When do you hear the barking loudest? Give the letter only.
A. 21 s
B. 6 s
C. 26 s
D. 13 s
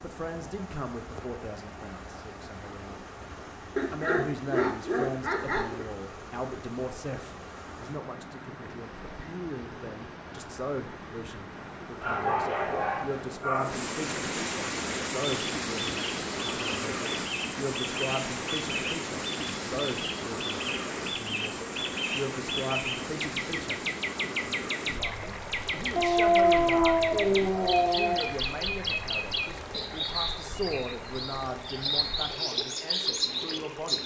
C.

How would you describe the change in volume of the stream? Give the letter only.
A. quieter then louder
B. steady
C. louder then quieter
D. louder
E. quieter
C.